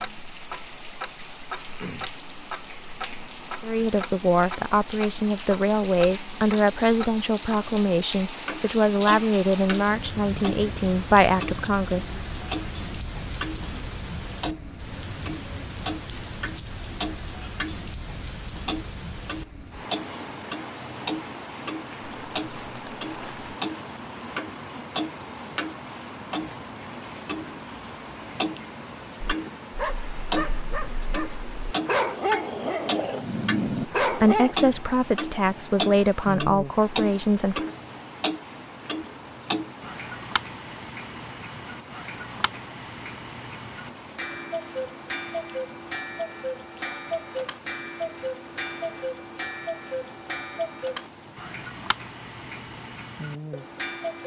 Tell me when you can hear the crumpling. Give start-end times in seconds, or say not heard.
22.0-23.6.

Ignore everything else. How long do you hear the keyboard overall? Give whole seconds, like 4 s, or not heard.
not heard.